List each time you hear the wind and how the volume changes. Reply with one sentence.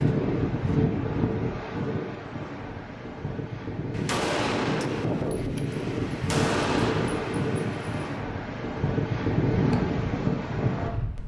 You can hear the wind from 0.0 to 11.2 s, getting quieter then louder.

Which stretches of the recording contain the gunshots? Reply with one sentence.
You can hear the gunshots from 3.9 to 8.2 s.